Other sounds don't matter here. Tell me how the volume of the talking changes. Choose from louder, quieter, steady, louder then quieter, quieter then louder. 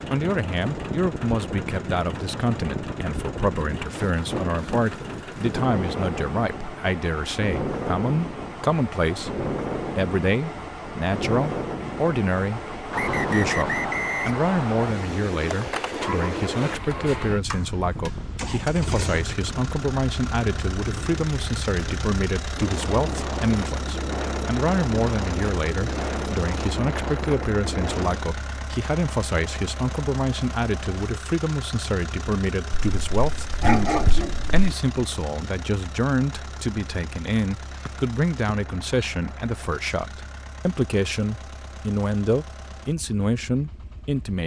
steady.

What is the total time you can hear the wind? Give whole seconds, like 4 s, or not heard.
28 s.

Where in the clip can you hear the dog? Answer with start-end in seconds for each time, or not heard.
32.7-34.8.